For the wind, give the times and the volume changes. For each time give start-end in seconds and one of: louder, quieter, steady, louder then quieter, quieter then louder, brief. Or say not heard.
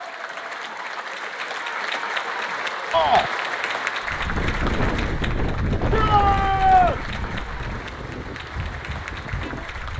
4.0-9.9 quieter.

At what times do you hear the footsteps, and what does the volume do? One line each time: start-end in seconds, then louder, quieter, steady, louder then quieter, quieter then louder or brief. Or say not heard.
not heard.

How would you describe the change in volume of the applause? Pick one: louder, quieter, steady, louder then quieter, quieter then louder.
quieter.